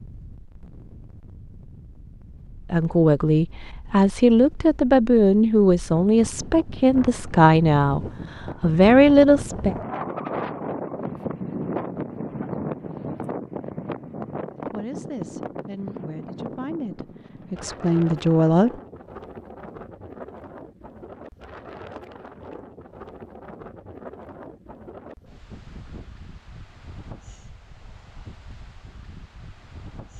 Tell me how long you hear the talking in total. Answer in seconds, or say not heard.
11 s.